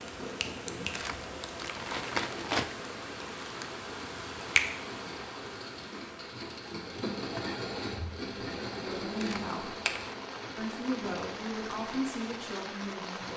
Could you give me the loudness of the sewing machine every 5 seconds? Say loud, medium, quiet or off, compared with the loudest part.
medium, loud, medium.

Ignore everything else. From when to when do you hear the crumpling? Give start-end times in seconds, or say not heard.
0.9-2.8, 9.2-10.2.